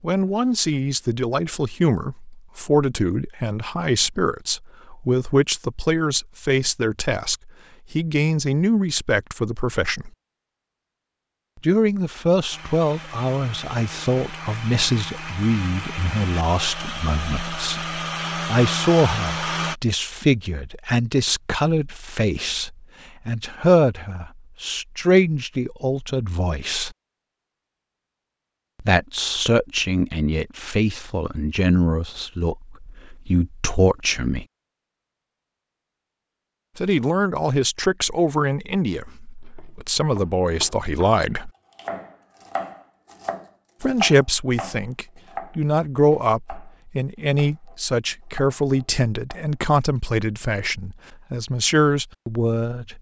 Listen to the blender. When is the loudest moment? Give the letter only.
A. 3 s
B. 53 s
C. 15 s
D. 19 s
D.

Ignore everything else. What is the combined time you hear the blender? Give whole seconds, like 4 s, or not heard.
7 s.